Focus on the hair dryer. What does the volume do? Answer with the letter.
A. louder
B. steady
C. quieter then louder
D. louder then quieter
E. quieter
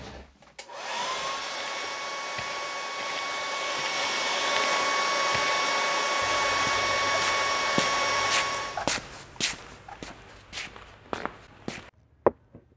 A.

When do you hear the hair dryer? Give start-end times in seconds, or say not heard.
0.0-8.8.